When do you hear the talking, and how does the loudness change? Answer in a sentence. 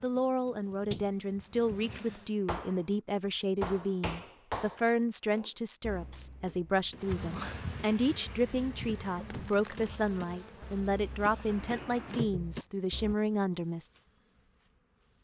You can hear the talking from 0.0 to 13.9 s, at a steady volume.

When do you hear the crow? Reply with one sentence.
You can't hear the crow here.